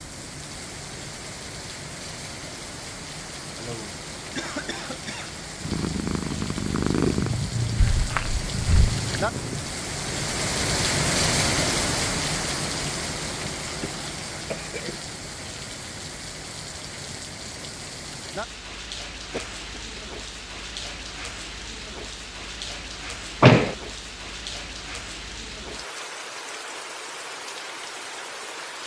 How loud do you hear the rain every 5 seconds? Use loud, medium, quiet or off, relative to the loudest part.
medium, medium, loud, medium, medium, medium.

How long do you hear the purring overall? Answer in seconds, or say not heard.
4 s.